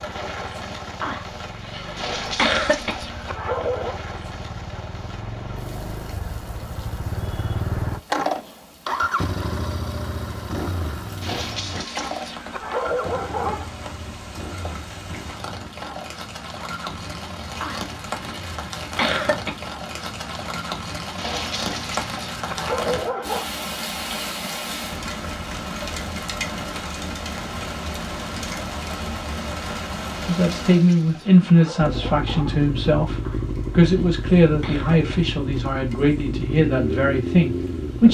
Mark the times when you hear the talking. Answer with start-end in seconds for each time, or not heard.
30.2-38.0.